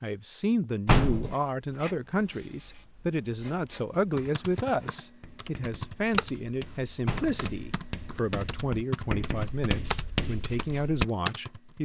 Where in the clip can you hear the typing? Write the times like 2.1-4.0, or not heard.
4.2-11.7.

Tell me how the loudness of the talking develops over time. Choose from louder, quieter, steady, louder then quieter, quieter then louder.
steady.